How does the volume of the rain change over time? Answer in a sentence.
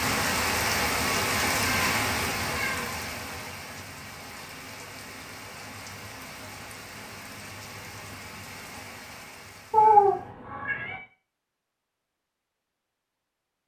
The loudness of the rain goes down.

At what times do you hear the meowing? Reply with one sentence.
The meowing can be heard from 1.5 to 2.9 s and from 9.7 to 11.0 s.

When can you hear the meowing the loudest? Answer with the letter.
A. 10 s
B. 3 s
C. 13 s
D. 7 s
A.